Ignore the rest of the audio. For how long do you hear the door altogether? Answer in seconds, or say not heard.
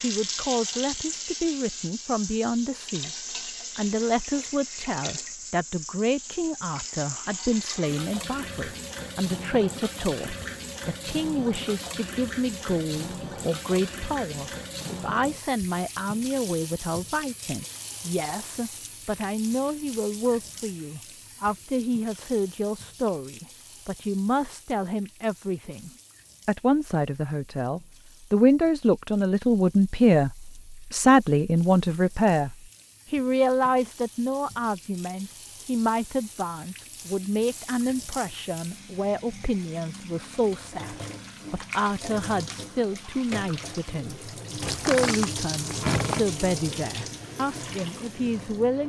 2 s.